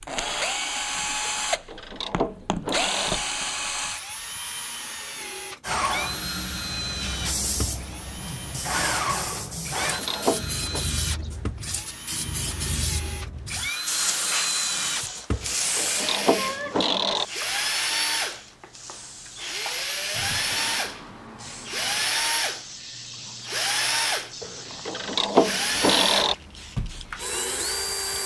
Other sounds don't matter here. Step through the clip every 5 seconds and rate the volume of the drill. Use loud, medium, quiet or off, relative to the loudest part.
loud, medium, medium, loud, loud, loud.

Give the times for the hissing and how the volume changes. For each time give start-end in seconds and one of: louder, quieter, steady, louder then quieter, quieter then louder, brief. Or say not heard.
5.6-28.2 quieter.